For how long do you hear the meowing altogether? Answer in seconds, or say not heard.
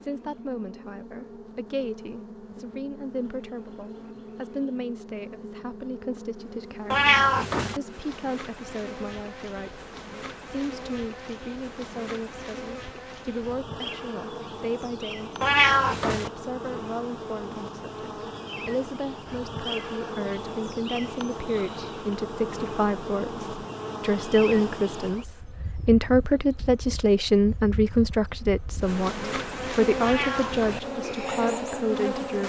3 s.